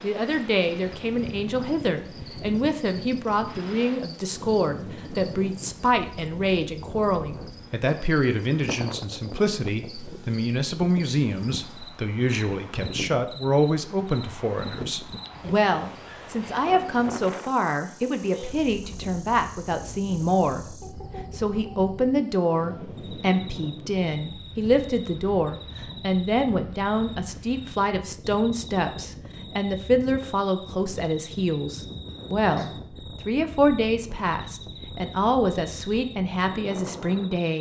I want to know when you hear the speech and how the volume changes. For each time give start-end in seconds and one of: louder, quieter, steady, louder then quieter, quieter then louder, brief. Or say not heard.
0.0-37.5 steady.